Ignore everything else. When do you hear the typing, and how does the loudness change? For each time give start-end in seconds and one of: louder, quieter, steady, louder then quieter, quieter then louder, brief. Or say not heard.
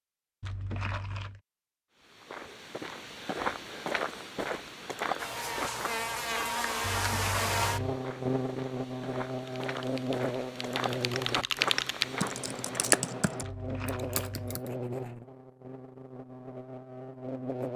9.3-14.7 louder then quieter.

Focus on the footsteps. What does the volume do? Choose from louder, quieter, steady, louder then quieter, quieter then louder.
quieter then louder.